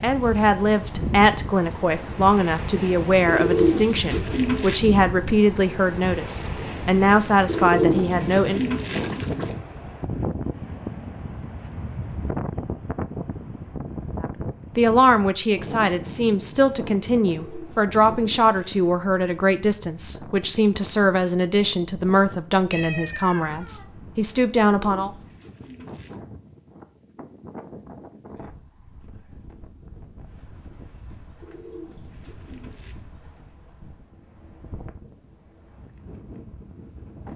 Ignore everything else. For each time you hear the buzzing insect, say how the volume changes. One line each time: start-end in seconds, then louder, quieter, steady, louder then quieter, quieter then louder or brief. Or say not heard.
not heard.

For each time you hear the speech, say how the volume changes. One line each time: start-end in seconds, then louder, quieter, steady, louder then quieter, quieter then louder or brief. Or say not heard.
0.0-8.7 steady
14.2-25.1 steady.